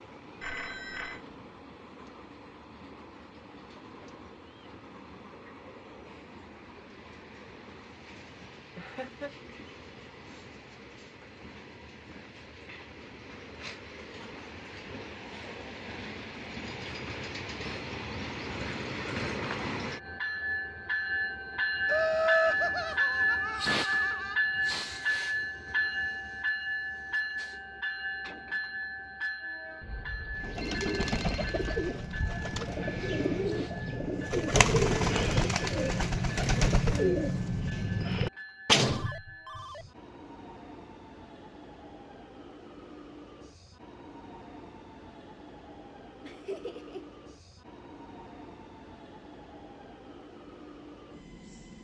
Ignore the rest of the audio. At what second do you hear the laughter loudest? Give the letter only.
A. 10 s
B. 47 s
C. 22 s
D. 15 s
C.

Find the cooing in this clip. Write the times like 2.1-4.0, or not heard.
30.4-39.1.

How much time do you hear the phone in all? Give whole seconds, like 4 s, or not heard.
4 s.